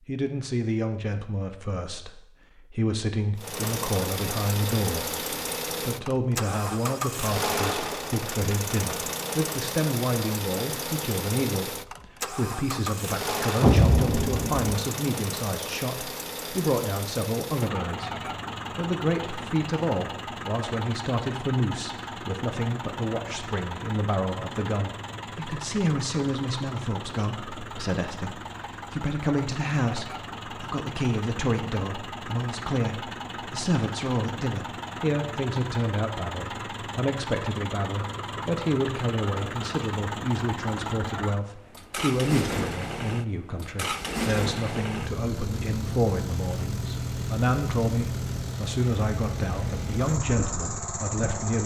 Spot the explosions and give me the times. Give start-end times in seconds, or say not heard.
13.6-14.8.